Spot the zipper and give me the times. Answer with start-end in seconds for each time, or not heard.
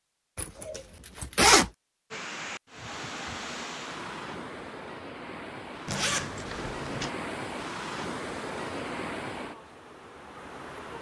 0.3-1.7, 5.8-7.1.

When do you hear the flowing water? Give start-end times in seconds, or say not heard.
2.1-10.9.